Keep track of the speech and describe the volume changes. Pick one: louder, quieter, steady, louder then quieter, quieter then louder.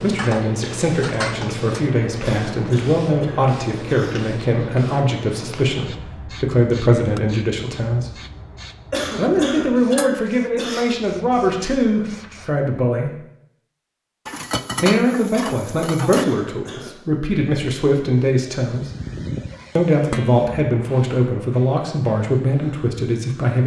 steady.